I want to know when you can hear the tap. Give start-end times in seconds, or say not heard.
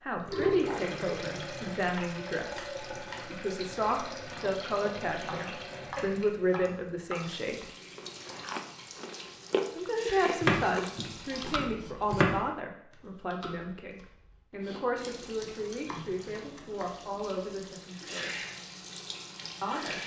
0.0-11.7, 14.9-20.0.